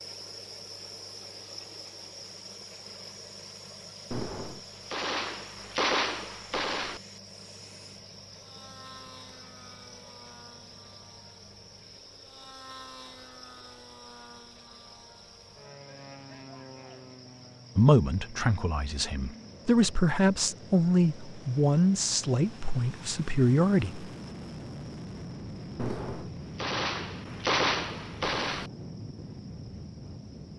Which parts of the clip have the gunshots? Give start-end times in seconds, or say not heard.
4.1-7.0, 25.8-28.7.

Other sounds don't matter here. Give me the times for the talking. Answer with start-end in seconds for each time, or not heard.
17.8-24.1.